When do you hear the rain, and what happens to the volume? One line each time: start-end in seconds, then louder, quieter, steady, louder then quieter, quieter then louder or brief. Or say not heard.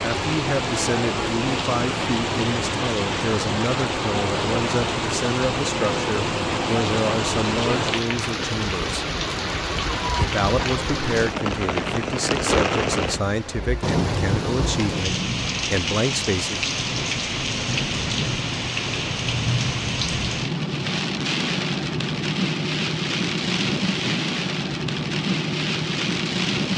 0.0-26.7 steady.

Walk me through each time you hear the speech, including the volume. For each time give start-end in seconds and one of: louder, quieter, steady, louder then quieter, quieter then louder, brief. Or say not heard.
0.0-9.1 steady
10.2-16.6 steady.